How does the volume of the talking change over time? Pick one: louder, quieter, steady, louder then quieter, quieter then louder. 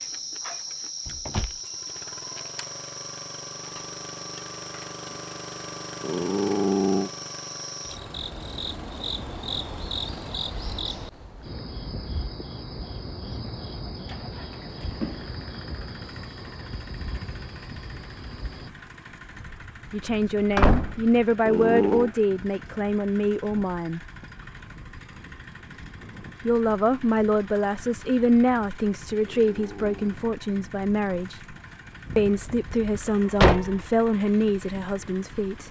steady.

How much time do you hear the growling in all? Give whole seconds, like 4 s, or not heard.
3 s.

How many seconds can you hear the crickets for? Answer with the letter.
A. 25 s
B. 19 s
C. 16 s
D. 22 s
B.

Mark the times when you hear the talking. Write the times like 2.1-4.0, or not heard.
19.9-24.0, 26.4-31.6, 32.1-35.6.